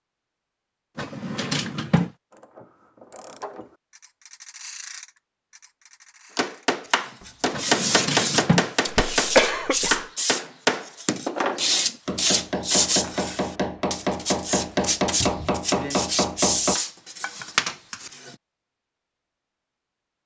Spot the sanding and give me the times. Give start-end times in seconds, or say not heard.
6.8-18.4.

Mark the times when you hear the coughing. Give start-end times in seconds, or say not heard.
8.8-10.1.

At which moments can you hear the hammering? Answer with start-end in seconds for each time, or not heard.
6.3-16.8.